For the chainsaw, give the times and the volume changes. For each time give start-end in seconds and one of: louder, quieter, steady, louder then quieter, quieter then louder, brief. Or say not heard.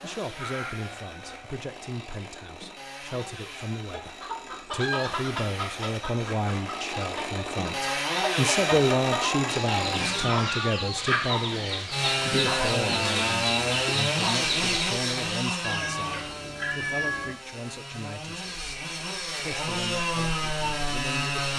0.0-10.2 louder
11.9-21.5 quieter then louder.